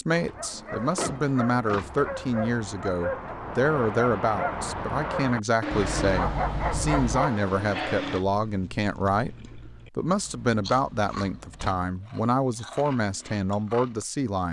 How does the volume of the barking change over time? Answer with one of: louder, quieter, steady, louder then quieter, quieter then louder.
louder.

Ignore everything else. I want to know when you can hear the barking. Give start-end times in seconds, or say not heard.
0.1-8.2.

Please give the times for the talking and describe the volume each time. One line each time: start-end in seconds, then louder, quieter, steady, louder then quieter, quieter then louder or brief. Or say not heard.
0.0-14.4 steady.